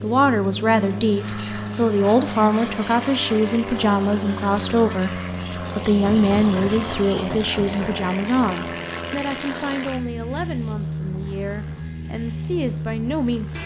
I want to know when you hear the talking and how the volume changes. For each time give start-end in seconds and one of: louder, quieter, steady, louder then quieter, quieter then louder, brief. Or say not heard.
0.0-13.6 quieter.